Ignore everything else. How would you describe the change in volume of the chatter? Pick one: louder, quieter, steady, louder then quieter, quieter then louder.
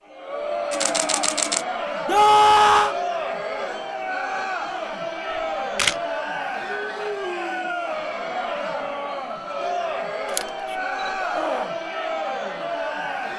steady.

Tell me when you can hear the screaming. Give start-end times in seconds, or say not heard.
2.0-3.0, 11.2-11.8.